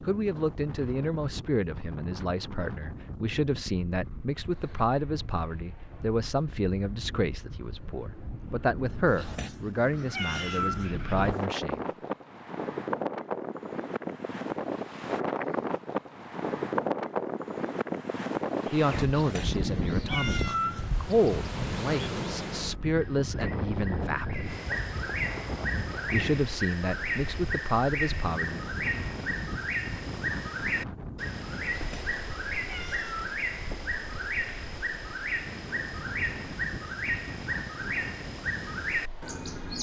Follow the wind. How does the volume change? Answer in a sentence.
The volume of the wind goes up, then down.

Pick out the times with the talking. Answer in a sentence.
The talking can be heard from 0.0 to 11.8 s, from 18.7 to 24.6 s and from 25.9 to 28.6 s.